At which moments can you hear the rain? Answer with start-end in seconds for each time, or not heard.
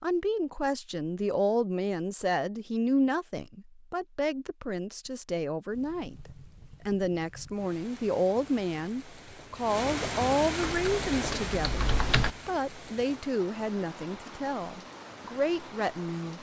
5.7-16.3.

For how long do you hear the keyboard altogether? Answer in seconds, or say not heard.
2 s.